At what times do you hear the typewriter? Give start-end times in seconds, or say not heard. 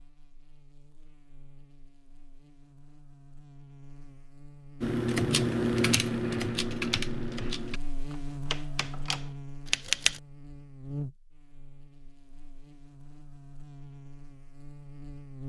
4.8-10.2.